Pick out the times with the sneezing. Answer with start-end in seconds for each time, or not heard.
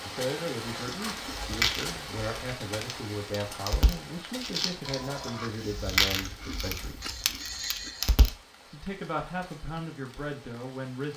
7.0-8.2.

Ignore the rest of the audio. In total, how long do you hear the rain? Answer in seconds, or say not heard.
11 s.